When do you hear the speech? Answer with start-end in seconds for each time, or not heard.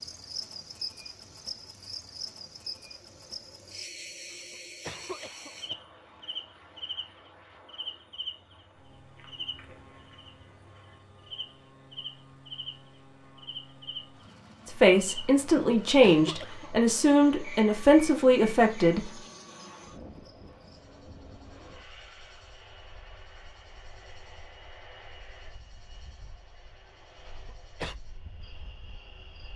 14.7-19.1.